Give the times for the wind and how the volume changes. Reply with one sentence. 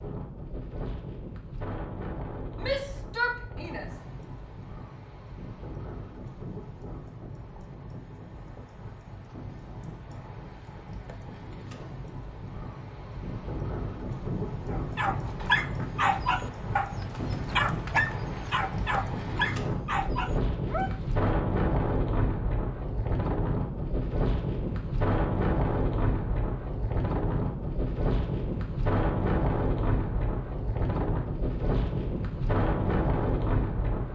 You can hear the wind from 0.0 to 34.1 s, getting louder.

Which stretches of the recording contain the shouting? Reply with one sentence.
You can hear the shouting from 2.6 to 3.9 s.